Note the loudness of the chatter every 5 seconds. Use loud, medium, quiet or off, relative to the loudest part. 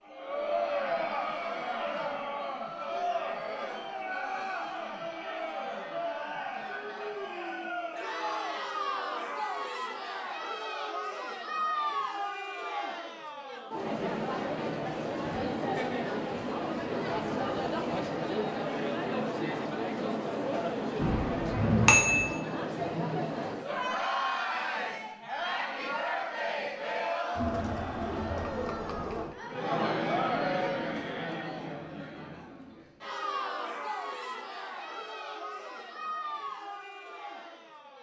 loud, loud, loud, loud, loud, loud, loud, medium.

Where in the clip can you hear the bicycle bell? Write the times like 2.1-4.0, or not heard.
20.9-22.4.